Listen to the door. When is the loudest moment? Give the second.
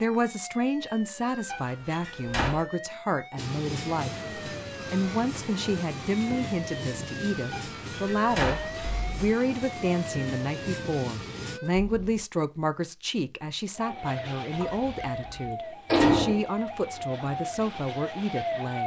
16 s.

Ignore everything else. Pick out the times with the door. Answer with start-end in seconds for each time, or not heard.
1.4-2.6, 7.5-9.1, 14.6-16.4.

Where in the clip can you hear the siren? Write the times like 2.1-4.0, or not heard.
0.0-12.2, 13.8-18.8.